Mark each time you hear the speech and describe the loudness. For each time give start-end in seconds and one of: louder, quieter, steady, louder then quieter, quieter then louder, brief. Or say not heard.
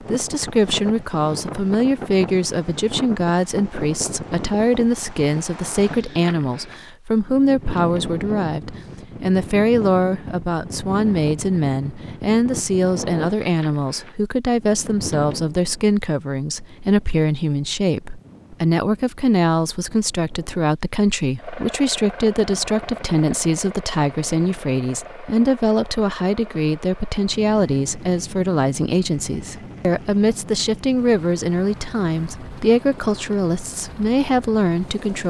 0.0-35.2 steady.